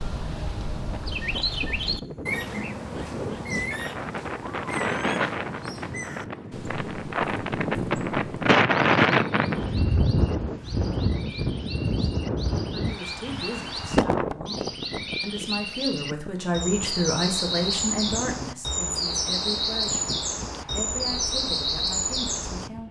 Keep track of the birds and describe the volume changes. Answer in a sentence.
The loudness of the birds goes down, then up.